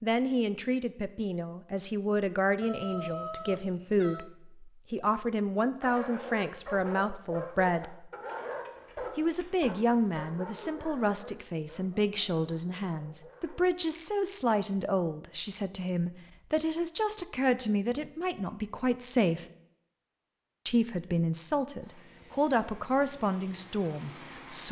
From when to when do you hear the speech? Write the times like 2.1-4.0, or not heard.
0.0-8.1, 9.2-19.4, 20.6-24.6.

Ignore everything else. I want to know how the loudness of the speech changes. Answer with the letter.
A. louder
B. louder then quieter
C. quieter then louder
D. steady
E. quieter
D.